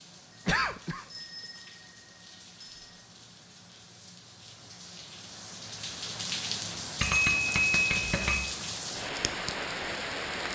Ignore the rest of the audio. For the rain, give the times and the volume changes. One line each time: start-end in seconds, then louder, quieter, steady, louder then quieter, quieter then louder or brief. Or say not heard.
0.0-10.5 louder.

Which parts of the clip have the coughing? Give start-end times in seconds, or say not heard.
0.5-1.1.